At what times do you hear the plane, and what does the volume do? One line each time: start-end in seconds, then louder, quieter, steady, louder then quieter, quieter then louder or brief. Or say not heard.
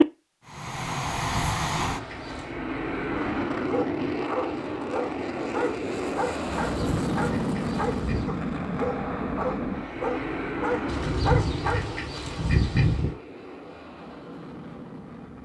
0.0-15.3 quieter.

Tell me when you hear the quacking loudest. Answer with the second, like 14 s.
13 s.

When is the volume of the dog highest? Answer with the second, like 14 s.
11 s.